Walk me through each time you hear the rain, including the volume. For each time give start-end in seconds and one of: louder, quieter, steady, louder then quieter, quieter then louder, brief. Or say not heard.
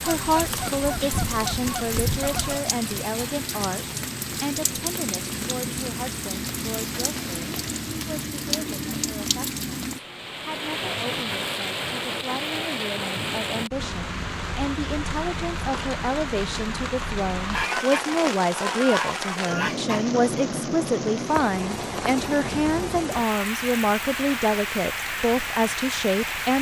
0.0-26.5 steady.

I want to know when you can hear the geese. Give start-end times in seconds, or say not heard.
0.0-2.6, 17.4-20.1.